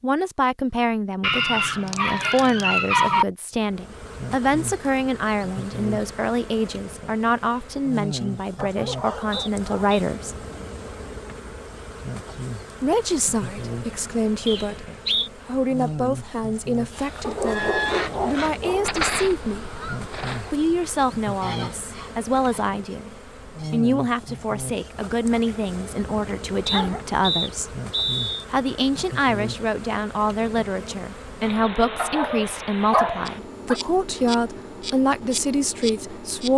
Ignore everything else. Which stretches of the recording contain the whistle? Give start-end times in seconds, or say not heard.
9.3-10.0, 14.4-15.3, 26.6-28.4.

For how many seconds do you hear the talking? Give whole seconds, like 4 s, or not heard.
31 s.